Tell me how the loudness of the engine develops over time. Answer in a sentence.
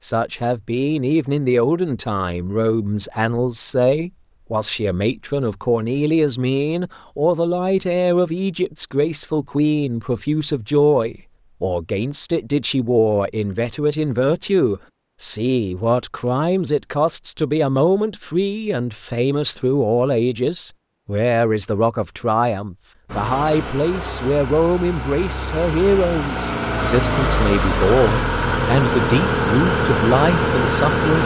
The loudness of the engine goes up.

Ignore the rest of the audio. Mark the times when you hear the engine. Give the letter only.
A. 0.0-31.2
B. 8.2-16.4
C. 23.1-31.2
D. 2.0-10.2
C.